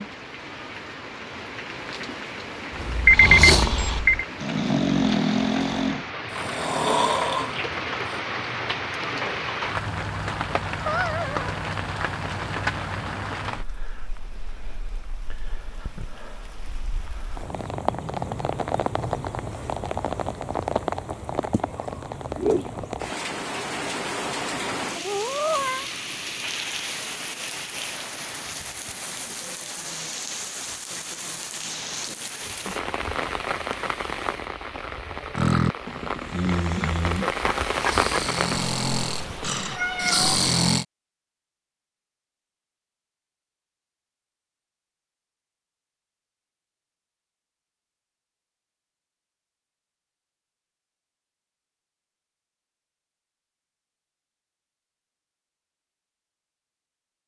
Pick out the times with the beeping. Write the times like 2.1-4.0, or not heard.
3.0-4.2.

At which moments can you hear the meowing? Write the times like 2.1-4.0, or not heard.
10.8-11.5, 24.9-25.9, 39.2-40.4.